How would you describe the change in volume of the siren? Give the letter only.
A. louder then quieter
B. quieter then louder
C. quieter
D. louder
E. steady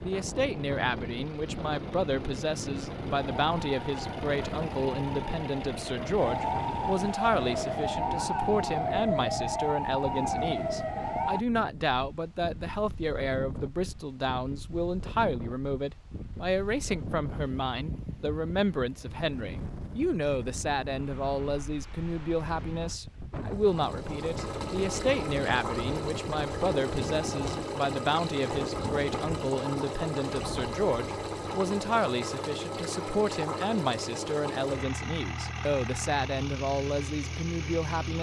D.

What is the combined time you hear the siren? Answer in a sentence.
The siren can be heard for 8 seconds in total.